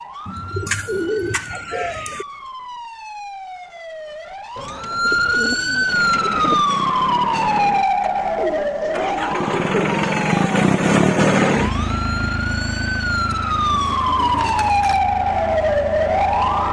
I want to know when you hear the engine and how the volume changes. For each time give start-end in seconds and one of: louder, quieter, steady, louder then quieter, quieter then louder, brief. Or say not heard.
5.8-16.6 louder then quieter.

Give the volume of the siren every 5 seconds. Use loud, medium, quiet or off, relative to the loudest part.
quiet, loud, loud, loud.